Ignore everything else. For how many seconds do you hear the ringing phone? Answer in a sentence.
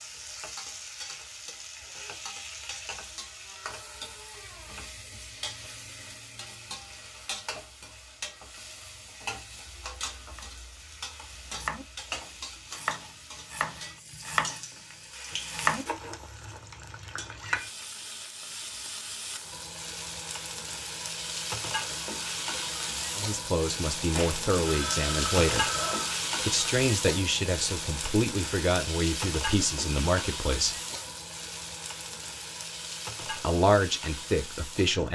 You can hear the ringing phone for 2 seconds altogether.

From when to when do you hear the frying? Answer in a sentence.
The frying can be heard from 0.0 to 35.1 s.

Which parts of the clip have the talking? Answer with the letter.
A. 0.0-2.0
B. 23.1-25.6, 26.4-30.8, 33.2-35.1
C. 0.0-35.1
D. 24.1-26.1
B.